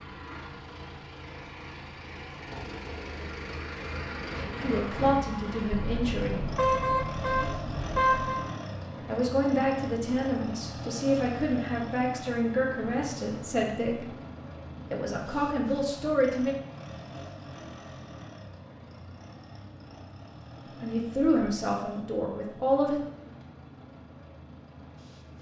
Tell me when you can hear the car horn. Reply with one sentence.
The car horn can be heard from 5.8 to 8.4 s.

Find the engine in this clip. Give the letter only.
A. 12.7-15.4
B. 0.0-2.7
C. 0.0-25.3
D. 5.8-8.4
C.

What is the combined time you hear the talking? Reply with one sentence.
You can hear the talking for 11 seconds altogether.